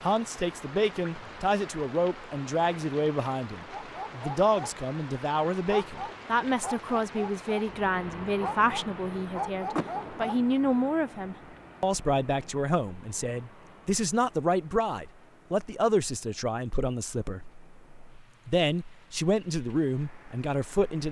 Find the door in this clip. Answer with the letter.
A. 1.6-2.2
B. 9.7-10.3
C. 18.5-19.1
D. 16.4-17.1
B.